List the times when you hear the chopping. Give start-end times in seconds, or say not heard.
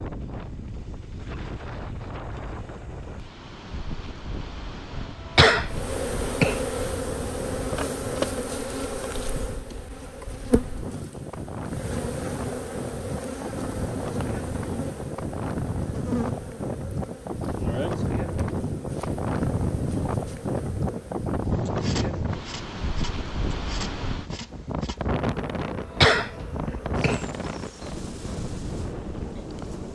not heard.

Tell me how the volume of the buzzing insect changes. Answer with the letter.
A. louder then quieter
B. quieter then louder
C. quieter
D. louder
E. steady
C.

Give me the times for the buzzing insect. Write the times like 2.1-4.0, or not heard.
5.7-29.8.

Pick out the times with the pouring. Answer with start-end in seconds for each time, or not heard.
not heard.